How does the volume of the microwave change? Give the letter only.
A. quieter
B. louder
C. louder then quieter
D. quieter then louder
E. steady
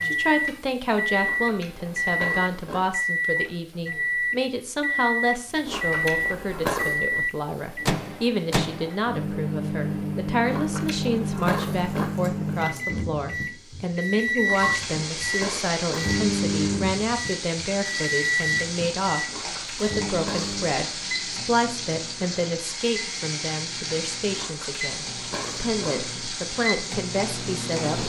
A.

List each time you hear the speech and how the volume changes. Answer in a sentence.
You can hear the speech from 0.0 to 28.0 s, at a steady volume.